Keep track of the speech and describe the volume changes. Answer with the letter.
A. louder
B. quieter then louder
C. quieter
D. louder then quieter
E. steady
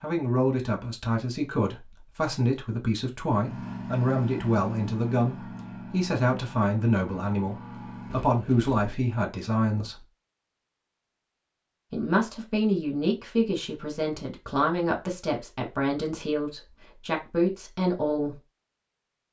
E.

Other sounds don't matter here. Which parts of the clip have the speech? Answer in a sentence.
You can hear the speech from 0.0 to 10.1 s and from 11.9 to 18.4 s.